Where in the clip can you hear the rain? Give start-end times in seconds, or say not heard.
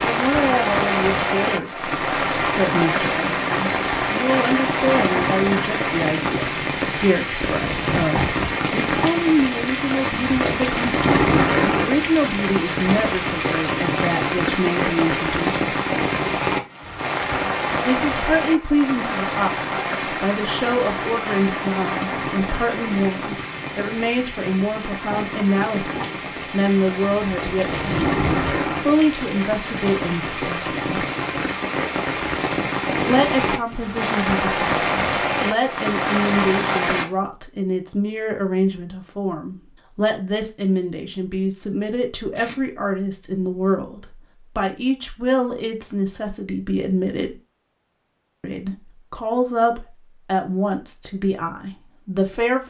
0.0-37.0.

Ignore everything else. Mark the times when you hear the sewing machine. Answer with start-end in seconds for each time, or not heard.
not heard.